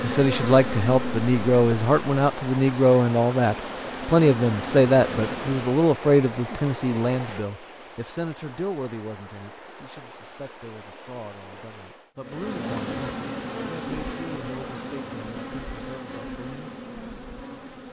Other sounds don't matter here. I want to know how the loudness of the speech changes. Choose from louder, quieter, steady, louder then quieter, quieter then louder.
quieter.